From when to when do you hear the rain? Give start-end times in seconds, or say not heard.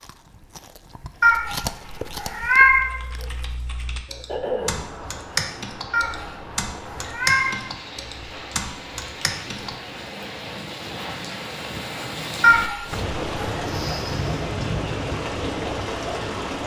4.6-16.6.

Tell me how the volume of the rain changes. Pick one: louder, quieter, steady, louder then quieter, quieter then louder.
louder.